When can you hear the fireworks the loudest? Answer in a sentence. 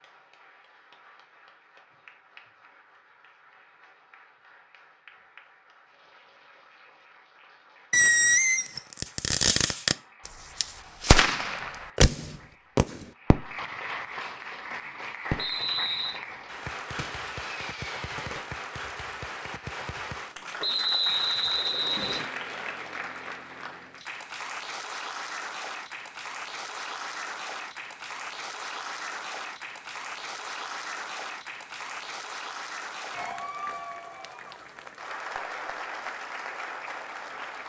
The volume of the fireworks peaks at 8 seconds.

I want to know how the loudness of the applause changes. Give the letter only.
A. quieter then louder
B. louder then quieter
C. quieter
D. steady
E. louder
E.